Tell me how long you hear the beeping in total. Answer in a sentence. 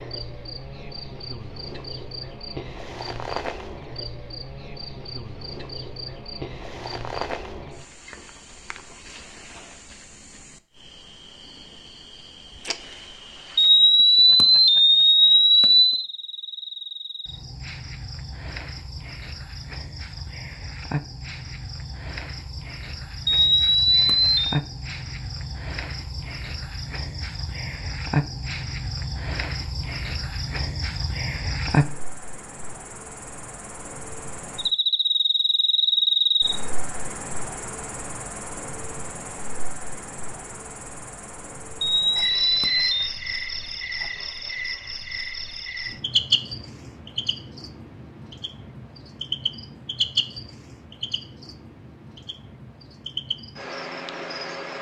You can hear the beeping for 5 seconds altogether.